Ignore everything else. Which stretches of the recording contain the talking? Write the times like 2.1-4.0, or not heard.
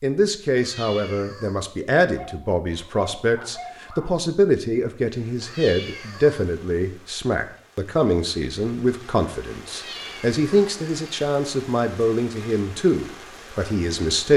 0.0-14.3.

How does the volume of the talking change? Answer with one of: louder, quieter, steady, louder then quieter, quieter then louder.
steady.